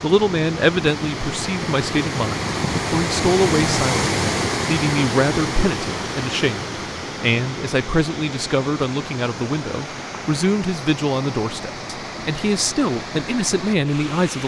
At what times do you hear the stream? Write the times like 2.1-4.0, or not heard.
0.0-14.4.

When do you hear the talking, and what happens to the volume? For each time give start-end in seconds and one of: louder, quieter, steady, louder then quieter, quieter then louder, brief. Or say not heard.
0.0-14.4 steady.